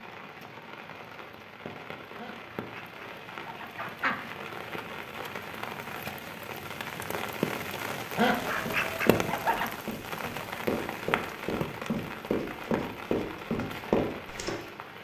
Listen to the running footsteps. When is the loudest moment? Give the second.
14 s.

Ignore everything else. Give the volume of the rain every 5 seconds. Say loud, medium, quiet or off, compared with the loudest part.
medium, loud, loud.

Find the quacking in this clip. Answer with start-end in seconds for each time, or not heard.
2.1-4.2, 8.2-9.7.